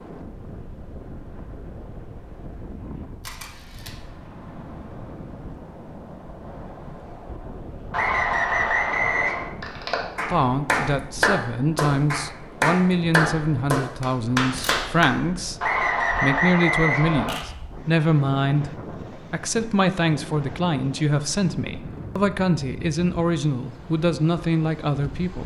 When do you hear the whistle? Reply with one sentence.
The whistle can be heard from 7.9 to 9.5 s and from 15.6 to 17.4 s.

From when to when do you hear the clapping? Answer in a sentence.
The clapping can be heard from 9.6 to 15.1 s.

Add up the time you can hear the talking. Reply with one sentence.
You can hear the talking for 15 seconds altogether.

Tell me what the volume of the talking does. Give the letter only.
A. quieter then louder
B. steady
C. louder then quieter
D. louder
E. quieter
B.